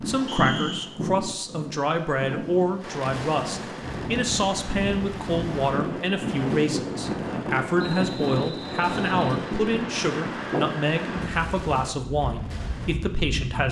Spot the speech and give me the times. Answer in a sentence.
You can hear the speech from 0.0 to 13.6 s.